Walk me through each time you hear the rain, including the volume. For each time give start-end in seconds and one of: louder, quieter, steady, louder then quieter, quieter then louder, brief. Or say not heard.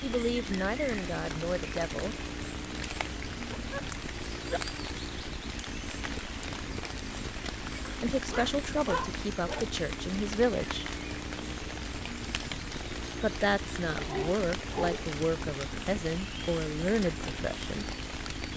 0.0-18.5 steady.